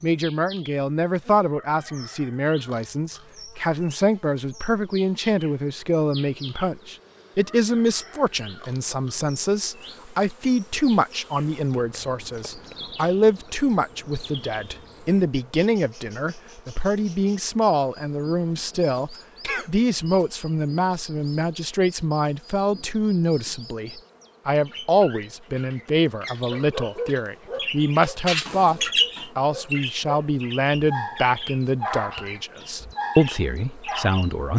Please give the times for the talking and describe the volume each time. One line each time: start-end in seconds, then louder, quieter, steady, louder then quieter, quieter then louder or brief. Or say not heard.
0.0-34.5 steady.